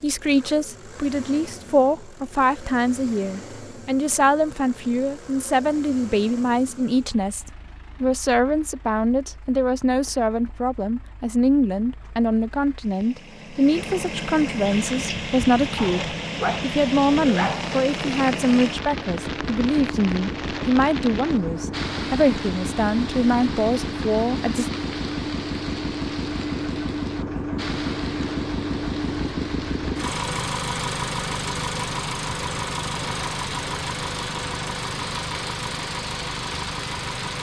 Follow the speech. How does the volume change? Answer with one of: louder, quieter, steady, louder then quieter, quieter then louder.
steady.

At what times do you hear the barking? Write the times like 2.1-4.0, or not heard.
15.8-17.7.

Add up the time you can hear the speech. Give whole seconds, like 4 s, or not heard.
25 s.